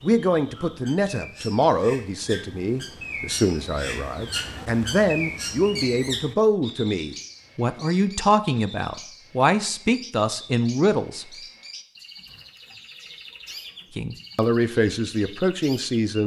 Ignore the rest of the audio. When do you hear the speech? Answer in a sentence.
The speech can be heard from 0.0 to 11.2 s and from 13.9 to 16.2 s.